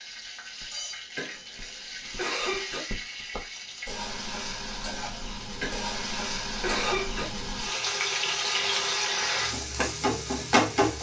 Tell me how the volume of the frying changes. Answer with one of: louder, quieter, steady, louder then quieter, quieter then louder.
louder.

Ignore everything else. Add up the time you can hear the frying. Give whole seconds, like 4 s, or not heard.
11 s.